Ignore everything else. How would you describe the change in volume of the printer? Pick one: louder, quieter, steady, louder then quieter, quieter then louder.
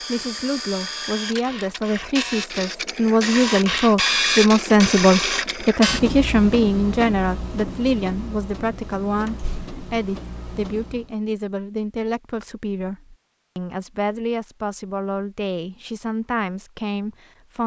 louder then quieter.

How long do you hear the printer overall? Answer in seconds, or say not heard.
11 s.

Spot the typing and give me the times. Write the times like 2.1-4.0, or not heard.
not heard.